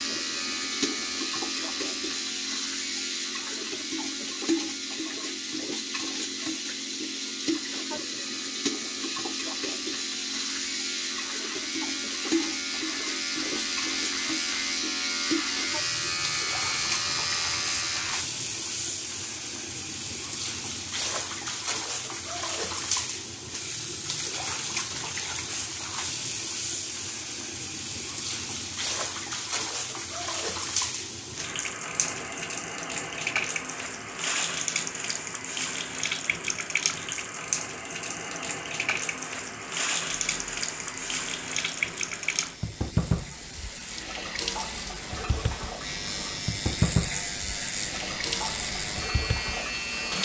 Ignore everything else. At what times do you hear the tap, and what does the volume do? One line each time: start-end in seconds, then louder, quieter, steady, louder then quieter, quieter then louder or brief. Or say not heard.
0.0-50.2 steady.